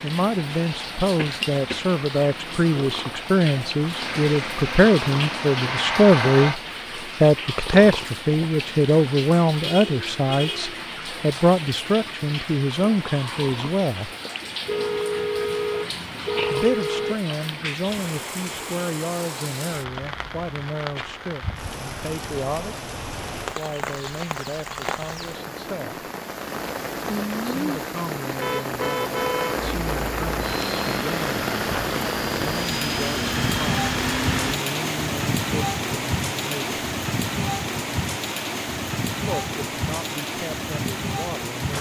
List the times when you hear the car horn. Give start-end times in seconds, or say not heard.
9.7-10.8, 14.7-17.1, 28.4-29.6.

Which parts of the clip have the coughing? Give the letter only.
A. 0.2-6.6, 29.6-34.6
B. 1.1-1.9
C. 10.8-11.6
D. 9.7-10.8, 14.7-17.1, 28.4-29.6
B.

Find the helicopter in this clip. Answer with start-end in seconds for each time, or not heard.
0.2-6.6, 29.6-34.6.